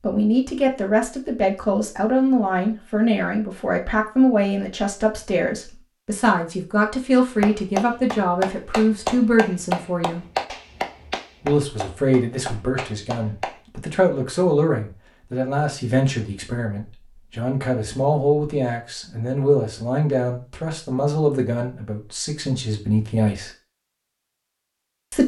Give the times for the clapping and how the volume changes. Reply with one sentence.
You can hear the clapping from 7.3 to 13.6 s, getting quieter.